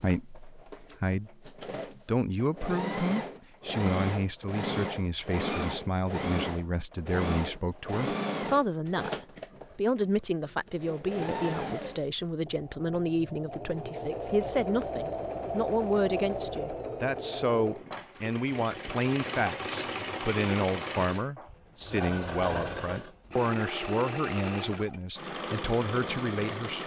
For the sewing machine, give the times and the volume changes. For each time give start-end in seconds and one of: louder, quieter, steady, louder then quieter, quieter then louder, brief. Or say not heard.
0.0-26.8 steady.